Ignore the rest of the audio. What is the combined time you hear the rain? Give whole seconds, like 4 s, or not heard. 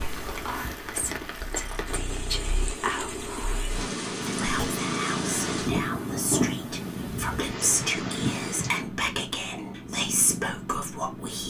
9 s.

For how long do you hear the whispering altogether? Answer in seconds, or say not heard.
11 s.